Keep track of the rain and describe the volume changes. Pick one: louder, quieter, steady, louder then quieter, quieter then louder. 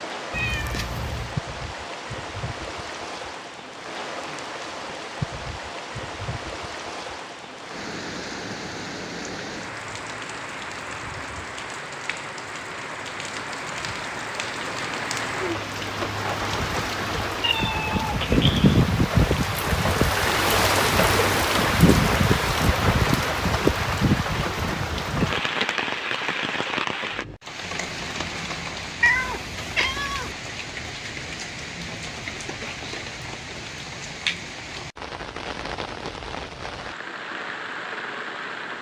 louder then quieter.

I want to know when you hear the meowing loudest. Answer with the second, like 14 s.
29 s.